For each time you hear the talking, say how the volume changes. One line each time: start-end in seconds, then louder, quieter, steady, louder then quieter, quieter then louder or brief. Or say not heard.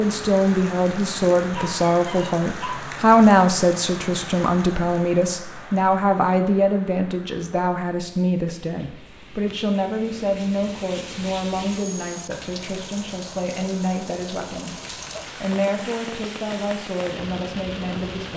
0.0-18.3 quieter.